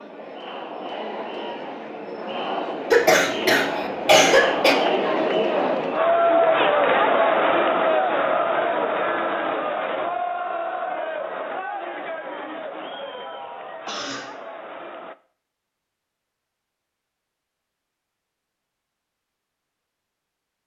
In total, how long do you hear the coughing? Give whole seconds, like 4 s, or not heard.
2 s.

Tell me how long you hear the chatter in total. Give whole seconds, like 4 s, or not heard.
15 s.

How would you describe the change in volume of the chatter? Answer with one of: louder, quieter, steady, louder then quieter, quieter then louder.
louder then quieter.